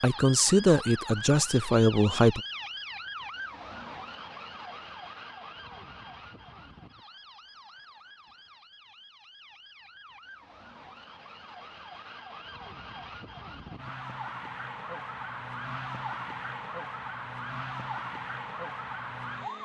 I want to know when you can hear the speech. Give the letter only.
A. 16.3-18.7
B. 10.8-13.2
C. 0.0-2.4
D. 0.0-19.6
C.